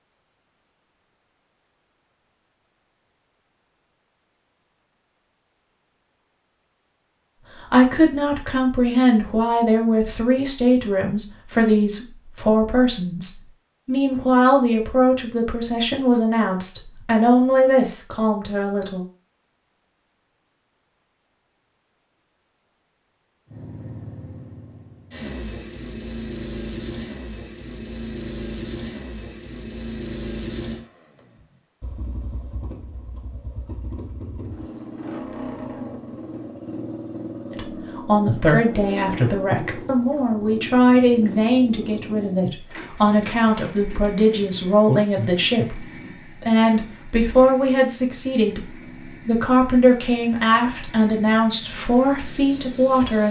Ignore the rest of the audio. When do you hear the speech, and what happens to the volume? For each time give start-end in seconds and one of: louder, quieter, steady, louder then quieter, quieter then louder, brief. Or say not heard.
7.6-19.1 steady
37.5-53.2 steady.